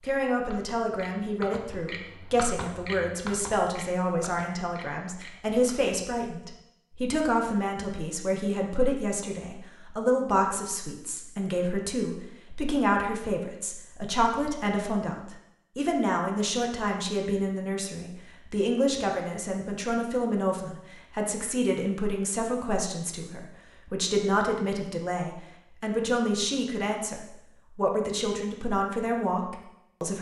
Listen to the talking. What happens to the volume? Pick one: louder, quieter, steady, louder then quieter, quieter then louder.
steady.